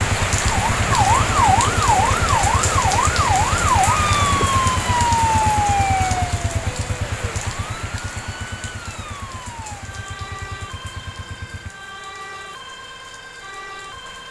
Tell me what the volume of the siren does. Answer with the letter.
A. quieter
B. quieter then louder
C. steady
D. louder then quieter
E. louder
A.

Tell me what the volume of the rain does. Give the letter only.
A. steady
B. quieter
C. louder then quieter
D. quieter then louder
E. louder
B.